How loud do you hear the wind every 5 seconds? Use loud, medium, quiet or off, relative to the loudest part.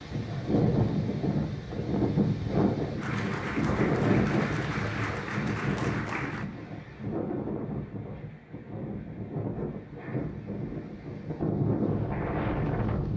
loud, medium, loud.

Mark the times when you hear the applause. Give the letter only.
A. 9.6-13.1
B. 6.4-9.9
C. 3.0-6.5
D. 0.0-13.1
C.